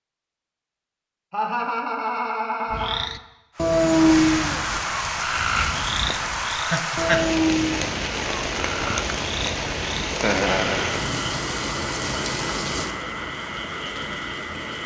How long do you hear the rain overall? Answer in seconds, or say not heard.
11 s.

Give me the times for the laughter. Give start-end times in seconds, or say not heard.
1.3-3.1, 6.5-7.2, 10.2-10.9.